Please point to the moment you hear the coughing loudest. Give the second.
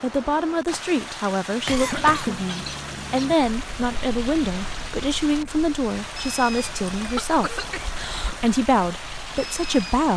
2 s.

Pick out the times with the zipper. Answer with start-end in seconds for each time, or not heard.
not heard.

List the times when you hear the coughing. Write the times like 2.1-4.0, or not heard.
1.6-2.5, 7.2-8.5.